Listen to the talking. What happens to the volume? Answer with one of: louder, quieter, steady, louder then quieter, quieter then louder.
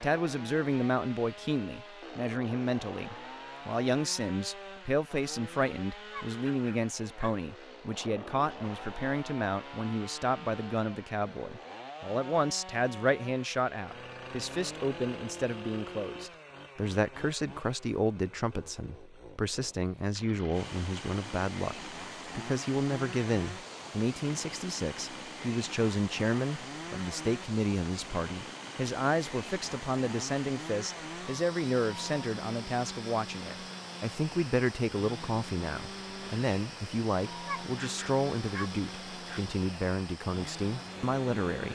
steady.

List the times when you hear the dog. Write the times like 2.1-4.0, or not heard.
6.1-7.4, 37.5-39.5.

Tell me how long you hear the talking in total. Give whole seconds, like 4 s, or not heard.
42 s.